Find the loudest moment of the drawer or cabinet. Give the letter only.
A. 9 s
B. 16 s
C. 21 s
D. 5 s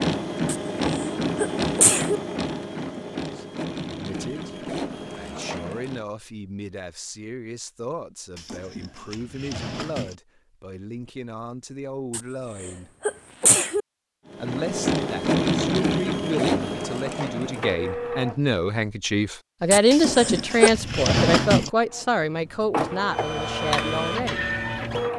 C.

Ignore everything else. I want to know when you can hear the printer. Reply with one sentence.
You can hear the printer from 0.0 to 6.0 s, from 14.3 to 19.1 s and from 21.9 to 25.1 s.